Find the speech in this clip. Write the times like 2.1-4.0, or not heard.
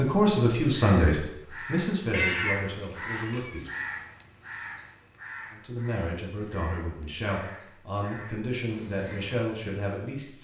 0.0-3.7, 5.5-10.4.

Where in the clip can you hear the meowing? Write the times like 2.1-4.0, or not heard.
2.1-3.6.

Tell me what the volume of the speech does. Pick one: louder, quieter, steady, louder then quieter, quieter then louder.
quieter.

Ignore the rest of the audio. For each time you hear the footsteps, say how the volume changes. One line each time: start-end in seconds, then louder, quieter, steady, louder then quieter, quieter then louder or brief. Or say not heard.
not heard.